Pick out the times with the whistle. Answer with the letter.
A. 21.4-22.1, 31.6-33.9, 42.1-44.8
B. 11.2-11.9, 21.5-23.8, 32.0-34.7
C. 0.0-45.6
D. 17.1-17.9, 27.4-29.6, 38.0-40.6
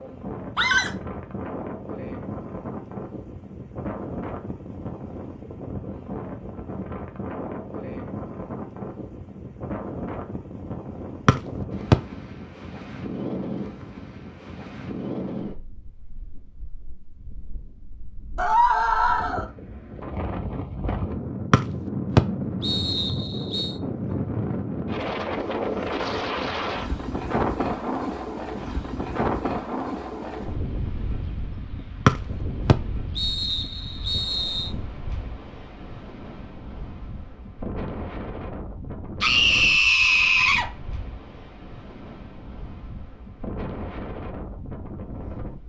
B.